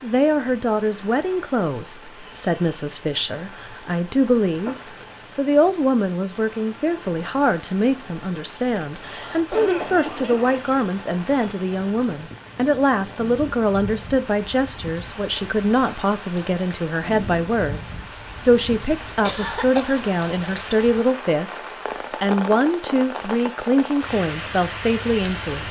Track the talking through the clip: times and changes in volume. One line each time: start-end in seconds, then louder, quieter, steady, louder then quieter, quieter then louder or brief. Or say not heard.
0.0-25.6 steady.